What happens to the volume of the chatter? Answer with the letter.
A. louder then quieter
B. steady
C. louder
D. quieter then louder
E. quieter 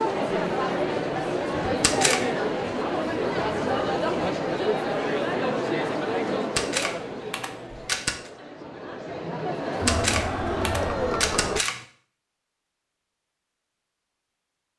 D.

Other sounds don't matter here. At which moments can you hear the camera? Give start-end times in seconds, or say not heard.
1.8-2.3, 6.5-8.3, 9.8-11.8.